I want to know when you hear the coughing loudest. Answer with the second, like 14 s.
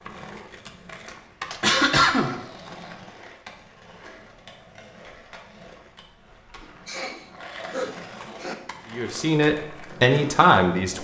2 s.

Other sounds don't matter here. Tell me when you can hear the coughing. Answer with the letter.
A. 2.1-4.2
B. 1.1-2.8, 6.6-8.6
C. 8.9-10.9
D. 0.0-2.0
B.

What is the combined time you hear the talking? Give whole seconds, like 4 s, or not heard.
2 s.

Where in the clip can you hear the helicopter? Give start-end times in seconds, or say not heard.
not heard.